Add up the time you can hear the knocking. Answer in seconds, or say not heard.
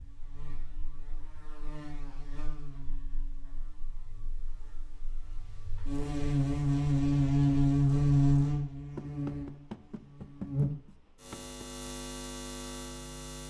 3 s.